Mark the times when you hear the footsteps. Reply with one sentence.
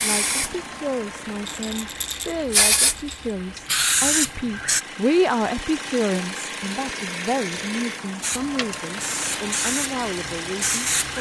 The footsteps can't be heard in this clip.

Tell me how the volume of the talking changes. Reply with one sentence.
The volume of the talking goes up, then down.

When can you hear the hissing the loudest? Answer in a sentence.
The volume of the hissing peaks at 4 seconds.